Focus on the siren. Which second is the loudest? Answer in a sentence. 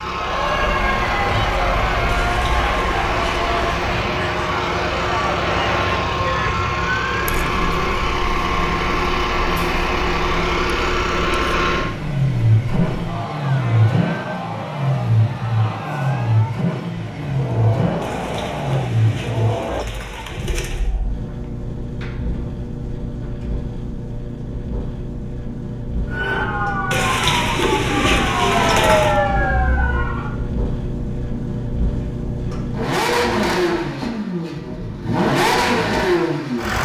The loudest moment of the siren is at 29 seconds.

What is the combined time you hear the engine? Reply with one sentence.
You can hear the engine for 37 seconds altogether.